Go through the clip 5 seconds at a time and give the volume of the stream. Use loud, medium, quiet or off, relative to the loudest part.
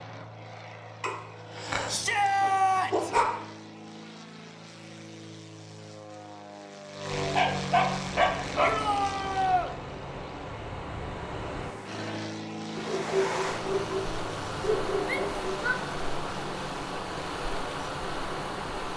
off, medium, loud, loud.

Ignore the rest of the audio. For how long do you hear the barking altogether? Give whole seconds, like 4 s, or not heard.
7 s.